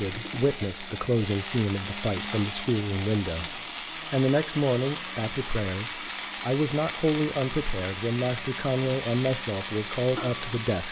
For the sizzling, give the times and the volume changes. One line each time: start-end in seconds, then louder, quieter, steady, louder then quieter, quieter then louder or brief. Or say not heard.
0.0-10.8 steady.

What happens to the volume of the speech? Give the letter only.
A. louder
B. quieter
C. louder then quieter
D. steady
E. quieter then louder
D.